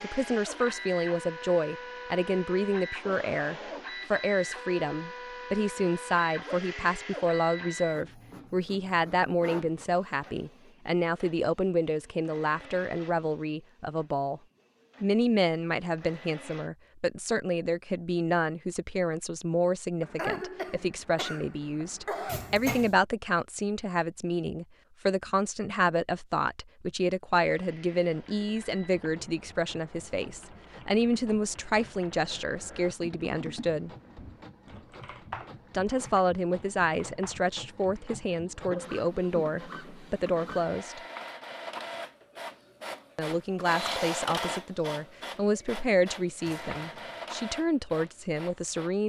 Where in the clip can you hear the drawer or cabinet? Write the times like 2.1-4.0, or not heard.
22.2-22.9, 46.4-47.2.